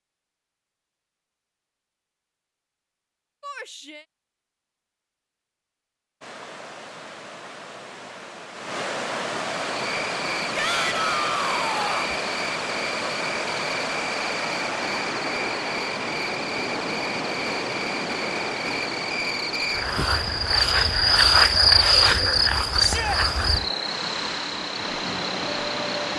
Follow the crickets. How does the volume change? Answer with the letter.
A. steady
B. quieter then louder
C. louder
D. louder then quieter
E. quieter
C.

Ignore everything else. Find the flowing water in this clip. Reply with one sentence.
You can hear the flowing water from 6.2 to 26.1 s.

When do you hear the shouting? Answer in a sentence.
You can hear the shouting from 3.4 to 4.0 s, from 10.6 to 12.2 s and from 22.8 to 23.2 s.